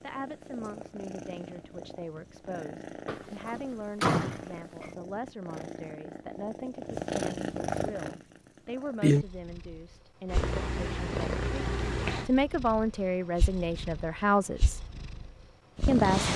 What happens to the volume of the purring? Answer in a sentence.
The volume of the purring goes up, then down.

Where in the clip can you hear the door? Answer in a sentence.
The door can be heard from 3.0 to 4.9 s.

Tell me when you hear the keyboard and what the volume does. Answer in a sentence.
You can't hear the keyboard here.